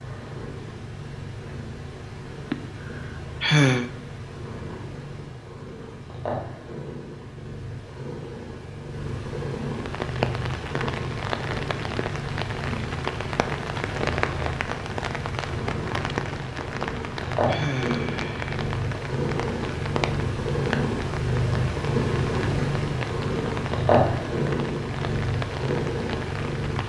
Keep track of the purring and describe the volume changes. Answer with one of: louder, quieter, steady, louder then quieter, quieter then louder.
louder.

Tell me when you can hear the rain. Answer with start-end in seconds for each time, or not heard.
9.8-26.8.